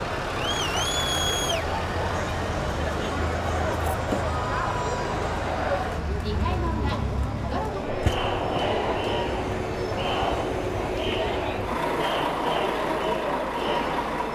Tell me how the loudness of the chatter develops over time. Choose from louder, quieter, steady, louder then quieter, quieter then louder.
steady.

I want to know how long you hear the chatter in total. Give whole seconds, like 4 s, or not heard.
14 s.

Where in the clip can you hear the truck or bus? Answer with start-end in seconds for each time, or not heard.
0.0-14.3.